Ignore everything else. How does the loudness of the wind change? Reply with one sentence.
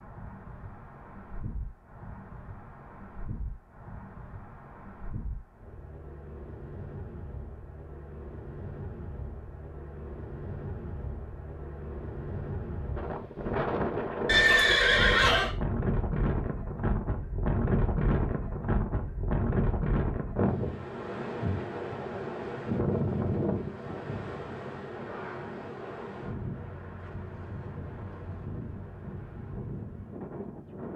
The volume of the wind goes up, then down.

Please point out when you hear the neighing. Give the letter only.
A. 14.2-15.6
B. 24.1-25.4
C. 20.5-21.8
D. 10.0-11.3
A.